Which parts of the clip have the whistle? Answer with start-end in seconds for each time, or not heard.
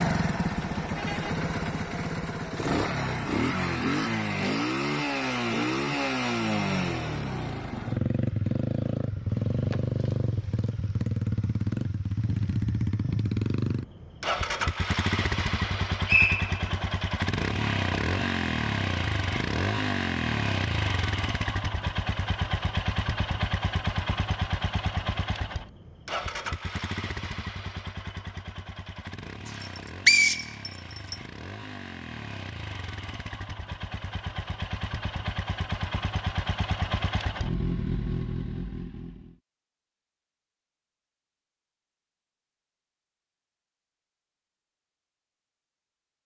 15.7-16.9, 29.6-31.1.